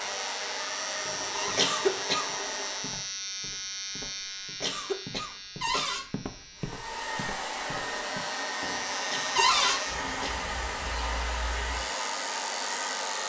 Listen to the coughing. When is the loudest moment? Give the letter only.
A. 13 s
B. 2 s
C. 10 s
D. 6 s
B.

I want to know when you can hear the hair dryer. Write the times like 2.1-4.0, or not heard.
0.0-3.1, 6.5-13.2.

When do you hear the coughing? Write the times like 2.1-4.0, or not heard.
1.6-2.3, 4.6-6.0, 9.1-10.5.